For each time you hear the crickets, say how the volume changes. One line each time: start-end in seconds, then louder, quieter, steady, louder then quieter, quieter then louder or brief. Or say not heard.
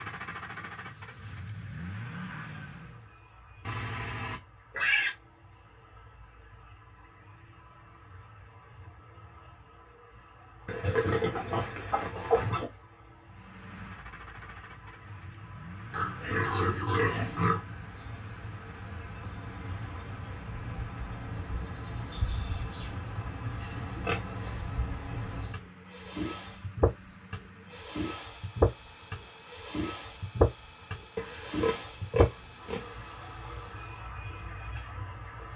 0.0-35.5 louder.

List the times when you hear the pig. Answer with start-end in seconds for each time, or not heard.
3.6-5.2, 10.7-12.7, 15.9-17.6, 23.8-24.6, 31.1-32.9.